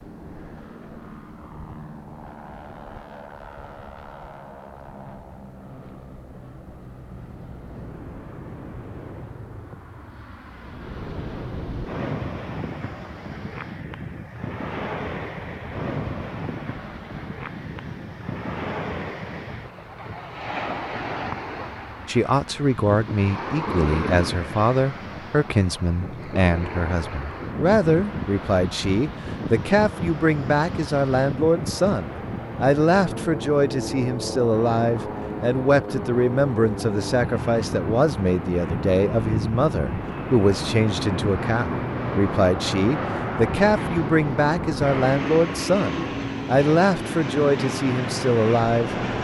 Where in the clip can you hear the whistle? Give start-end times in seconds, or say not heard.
not heard.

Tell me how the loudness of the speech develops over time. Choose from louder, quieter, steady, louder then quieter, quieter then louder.
steady.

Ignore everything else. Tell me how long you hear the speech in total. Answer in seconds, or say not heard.
27 s.